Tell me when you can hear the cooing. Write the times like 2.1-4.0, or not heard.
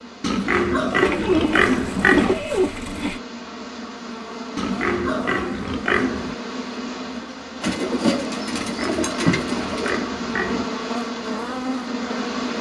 1.0-3.2, 7.6-10.1.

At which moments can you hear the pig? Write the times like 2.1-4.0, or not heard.
0.2-2.4, 4.5-6.3, 8.5-10.7.